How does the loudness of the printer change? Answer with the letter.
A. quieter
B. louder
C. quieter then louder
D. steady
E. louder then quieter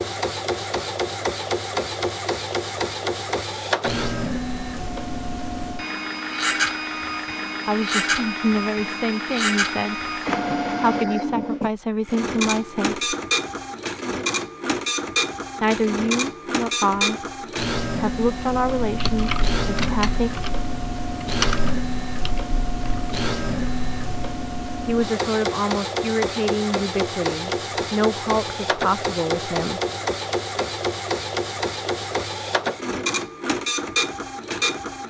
D.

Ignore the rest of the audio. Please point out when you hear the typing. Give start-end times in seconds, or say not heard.
18.6-24.4.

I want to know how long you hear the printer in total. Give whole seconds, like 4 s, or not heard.
35 s.